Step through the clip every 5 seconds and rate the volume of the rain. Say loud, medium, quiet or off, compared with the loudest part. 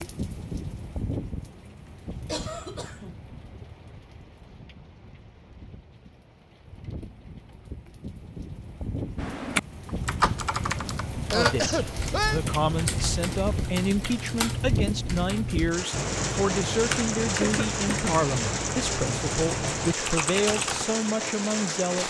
medium, medium, loud, loud, loud.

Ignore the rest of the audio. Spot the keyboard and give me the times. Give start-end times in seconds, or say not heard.
9.2-20.9.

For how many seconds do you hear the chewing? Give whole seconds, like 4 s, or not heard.
not heard.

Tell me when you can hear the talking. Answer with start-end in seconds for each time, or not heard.
11.3-22.0.